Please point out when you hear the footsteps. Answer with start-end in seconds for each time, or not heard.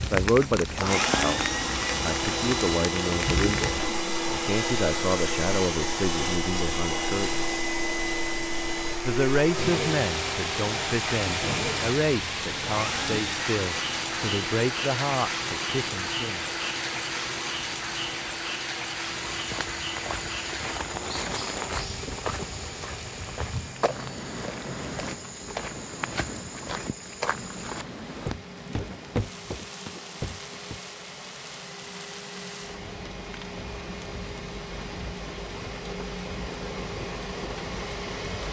19.2-30.8.